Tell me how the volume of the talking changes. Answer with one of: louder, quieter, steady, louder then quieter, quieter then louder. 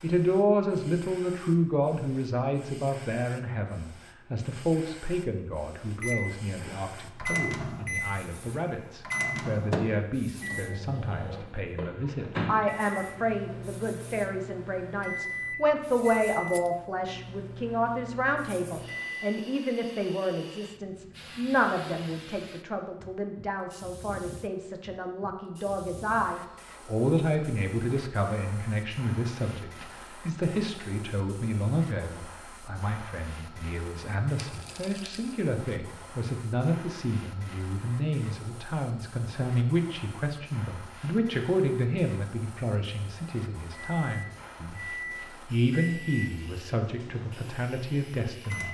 steady.